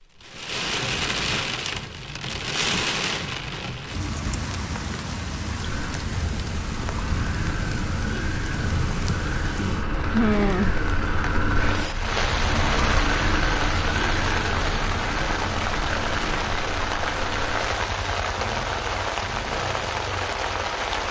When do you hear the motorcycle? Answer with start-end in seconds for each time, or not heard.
5.5-21.0.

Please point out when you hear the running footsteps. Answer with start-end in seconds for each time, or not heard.
not heard.